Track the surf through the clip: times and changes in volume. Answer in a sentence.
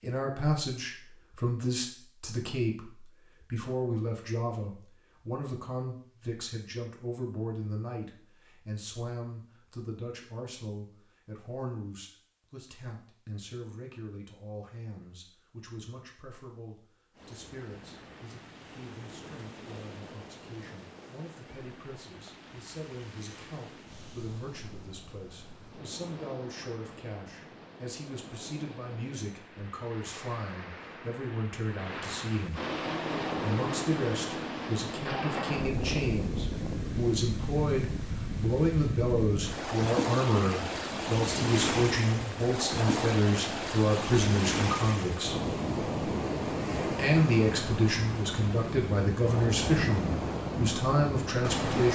You can hear the surf from 17.1 to 51.8 s, getting louder.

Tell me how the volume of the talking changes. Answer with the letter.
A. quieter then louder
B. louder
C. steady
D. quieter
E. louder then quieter
A.